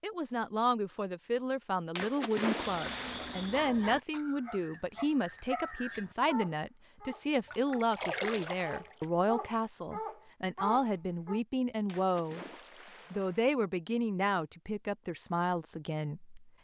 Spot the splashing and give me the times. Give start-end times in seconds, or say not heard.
1.9-3.5, 7.5-9.1, 11.8-13.4.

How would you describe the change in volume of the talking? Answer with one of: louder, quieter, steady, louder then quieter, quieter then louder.
steady.